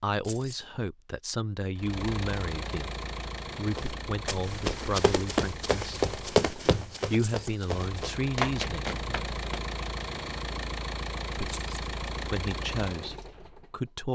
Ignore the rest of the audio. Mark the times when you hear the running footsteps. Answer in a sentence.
You can hear the running footsteps from 3.8 to 9.6 s.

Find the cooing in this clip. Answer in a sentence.
The cooing can't be heard in this clip.